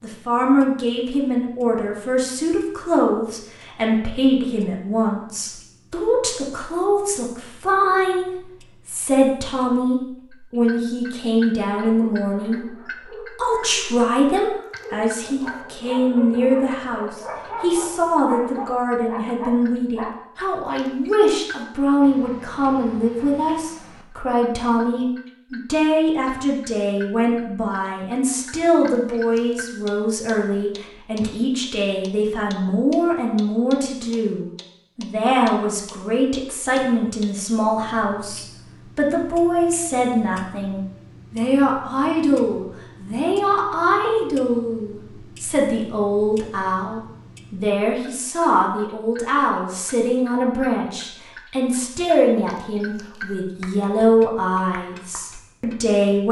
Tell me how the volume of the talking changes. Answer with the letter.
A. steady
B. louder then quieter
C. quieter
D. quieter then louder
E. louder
A.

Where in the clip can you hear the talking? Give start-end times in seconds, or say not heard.
0.0-56.2.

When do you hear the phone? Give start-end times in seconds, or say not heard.
not heard.